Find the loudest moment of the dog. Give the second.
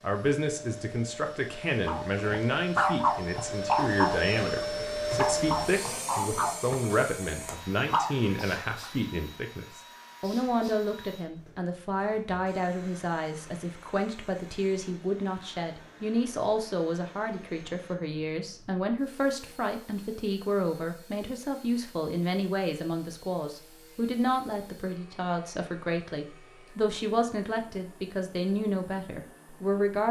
3 s.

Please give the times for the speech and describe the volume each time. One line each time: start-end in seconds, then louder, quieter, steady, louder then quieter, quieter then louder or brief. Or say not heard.
0.0-30.0 steady.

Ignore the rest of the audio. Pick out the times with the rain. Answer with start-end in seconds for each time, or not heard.
not heard.